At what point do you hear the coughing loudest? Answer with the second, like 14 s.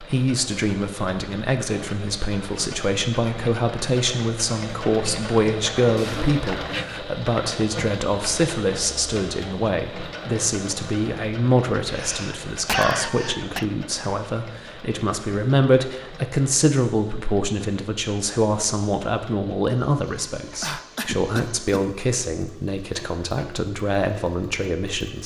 13 s.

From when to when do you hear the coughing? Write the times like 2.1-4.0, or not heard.
6.0-6.8, 11.8-13.7, 20.6-21.9.